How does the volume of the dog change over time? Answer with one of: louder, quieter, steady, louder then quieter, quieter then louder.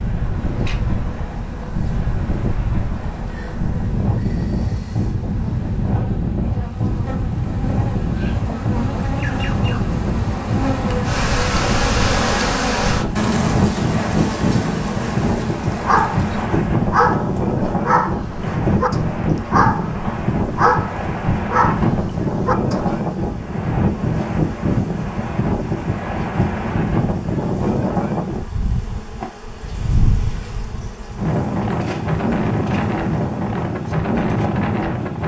steady.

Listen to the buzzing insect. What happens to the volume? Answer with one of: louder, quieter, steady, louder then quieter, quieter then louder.
louder then quieter.